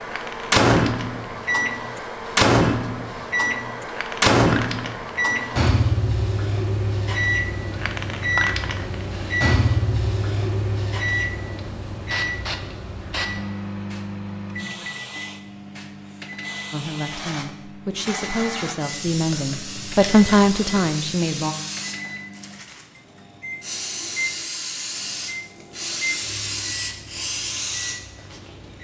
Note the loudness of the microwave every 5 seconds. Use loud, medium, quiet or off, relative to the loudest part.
loud, loud, medium, quiet, quiet, quiet.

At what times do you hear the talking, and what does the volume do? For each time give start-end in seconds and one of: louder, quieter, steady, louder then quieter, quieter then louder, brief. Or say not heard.
16.7-21.6 louder.